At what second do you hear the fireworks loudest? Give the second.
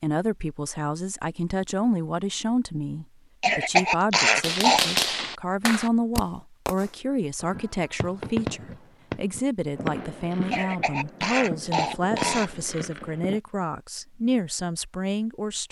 5 s.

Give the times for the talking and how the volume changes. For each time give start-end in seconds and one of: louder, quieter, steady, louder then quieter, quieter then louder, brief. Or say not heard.
0.0-15.6 steady.